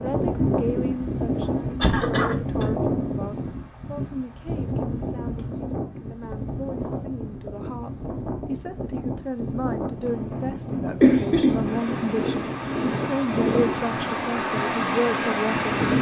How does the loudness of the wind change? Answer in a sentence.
The volume of the wind goes down, then up.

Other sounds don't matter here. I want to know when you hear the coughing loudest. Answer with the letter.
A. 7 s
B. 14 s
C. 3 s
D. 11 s
D.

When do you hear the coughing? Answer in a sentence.
You can hear the coughing from 1.8 to 2.6 s and from 11.0 to 11.7 s.